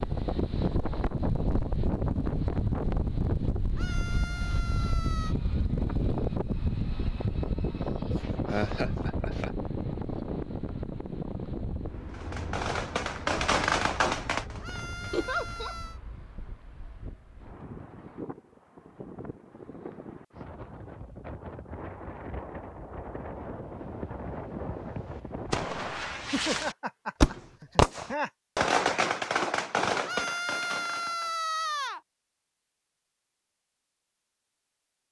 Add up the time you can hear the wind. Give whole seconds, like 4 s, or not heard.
26 s.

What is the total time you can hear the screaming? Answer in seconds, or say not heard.
5 s.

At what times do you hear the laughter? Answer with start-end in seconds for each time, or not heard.
8.1-9.5, 15.1-15.8, 26.2-28.3.